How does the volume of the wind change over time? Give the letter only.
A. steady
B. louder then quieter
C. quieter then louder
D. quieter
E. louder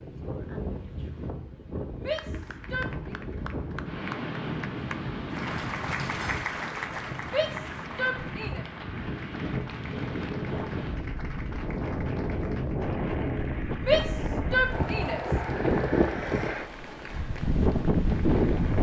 E.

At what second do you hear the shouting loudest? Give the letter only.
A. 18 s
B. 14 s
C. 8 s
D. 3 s
B.